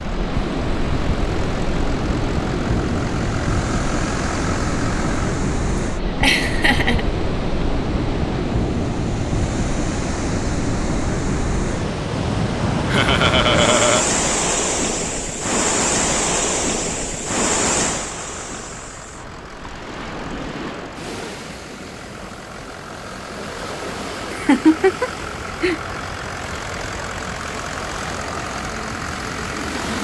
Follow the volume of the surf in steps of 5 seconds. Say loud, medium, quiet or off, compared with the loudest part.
loud, loud, loud, loud, medium, medium.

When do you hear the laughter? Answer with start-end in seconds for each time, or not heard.
6.2-7.1, 12.9-14.1, 24.3-25.8.